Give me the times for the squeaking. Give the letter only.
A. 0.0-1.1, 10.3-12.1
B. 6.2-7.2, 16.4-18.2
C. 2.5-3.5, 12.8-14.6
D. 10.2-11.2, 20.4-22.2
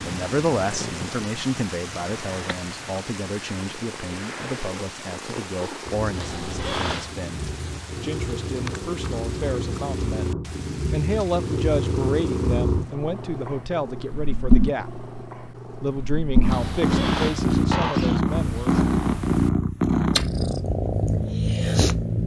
B.